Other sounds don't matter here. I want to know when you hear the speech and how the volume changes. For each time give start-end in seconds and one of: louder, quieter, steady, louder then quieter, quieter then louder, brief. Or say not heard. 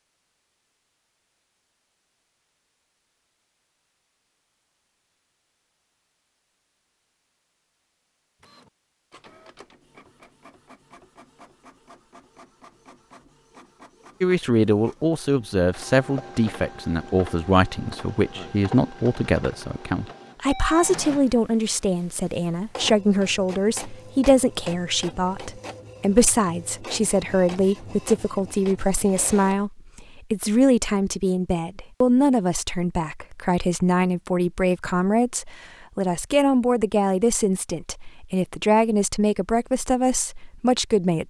14.2-41.2 steady.